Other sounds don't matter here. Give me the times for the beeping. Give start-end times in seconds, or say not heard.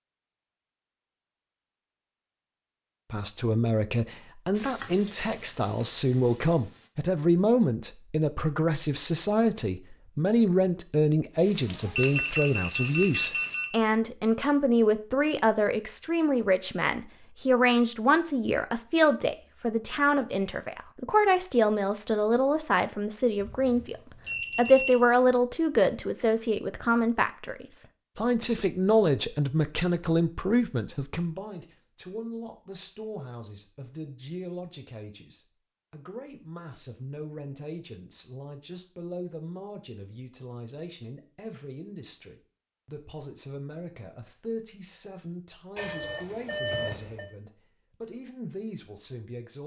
11.9-13.8, 23.4-24.9, 45.8-47.3.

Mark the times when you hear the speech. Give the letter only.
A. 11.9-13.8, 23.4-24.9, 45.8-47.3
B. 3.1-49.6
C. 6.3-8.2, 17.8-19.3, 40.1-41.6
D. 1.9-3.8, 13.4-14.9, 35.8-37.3
B.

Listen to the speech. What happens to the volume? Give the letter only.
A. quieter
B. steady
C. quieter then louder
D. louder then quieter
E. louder
A.